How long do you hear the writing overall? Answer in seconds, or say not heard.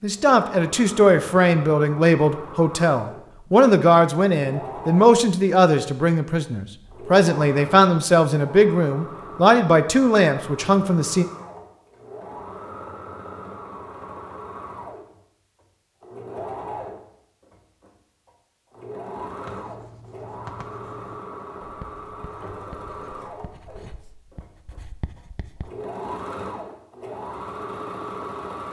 6 s.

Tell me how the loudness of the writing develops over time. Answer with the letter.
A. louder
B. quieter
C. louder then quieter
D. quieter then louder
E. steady
D.